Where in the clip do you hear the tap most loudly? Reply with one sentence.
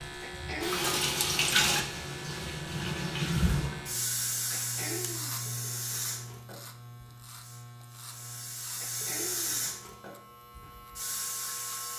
The loudest moment of the tap is at 1 second.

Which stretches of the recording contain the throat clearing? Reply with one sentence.
You can hear the throat clearing from 0.2 to 0.9 s, from 4.5 to 5.5 s and from 8.8 to 9.8 s.